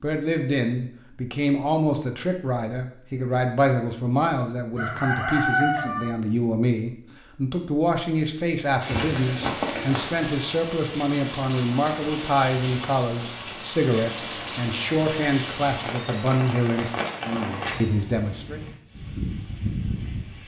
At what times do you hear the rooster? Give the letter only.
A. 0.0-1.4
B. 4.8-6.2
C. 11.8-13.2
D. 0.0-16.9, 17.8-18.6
B.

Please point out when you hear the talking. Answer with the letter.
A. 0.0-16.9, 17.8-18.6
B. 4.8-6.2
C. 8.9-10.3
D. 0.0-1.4
A.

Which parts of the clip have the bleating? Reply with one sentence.
You can't hear the bleating here.